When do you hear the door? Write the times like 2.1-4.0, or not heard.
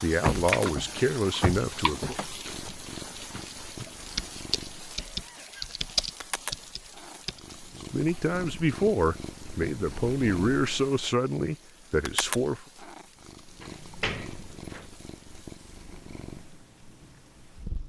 0.2-2.7, 13.6-14.9.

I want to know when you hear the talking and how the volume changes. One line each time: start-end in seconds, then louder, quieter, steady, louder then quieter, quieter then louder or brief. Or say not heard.
0.0-2.1 brief
7.8-12.6 steady.